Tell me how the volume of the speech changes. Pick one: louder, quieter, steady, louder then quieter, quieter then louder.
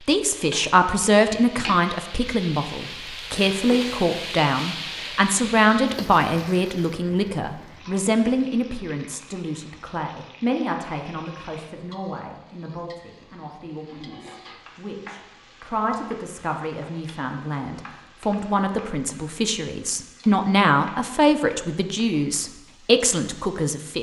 quieter then louder.